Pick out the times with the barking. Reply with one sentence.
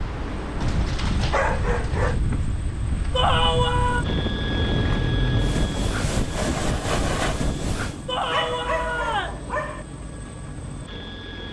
The barking can be heard from 0.6 to 2.2 s and from 8.3 to 9.8 s.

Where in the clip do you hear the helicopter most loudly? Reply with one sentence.
The volume of the helicopter peaks at 5 seconds.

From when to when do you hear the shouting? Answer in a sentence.
You can hear the shouting from 3.1 to 4.0 s and from 8.1 to 9.4 s.